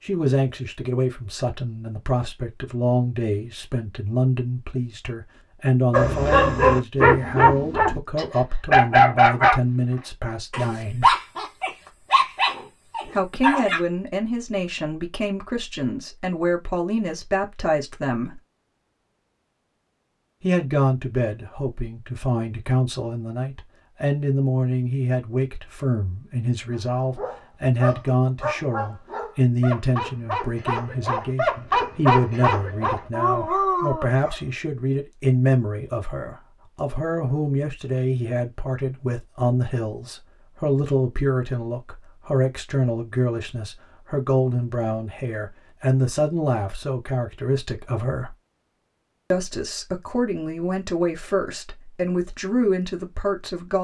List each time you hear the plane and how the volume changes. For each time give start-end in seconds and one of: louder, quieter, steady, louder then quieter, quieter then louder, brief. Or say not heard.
not heard.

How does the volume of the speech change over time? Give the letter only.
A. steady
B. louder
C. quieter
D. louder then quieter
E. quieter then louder
A.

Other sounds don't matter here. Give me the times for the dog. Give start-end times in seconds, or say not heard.
5.9-9.6, 10.5-13.8, 26.7-34.4.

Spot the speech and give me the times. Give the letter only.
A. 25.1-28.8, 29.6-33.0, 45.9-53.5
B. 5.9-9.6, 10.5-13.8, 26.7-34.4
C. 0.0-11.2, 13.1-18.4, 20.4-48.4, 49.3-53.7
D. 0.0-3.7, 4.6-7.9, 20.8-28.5
C.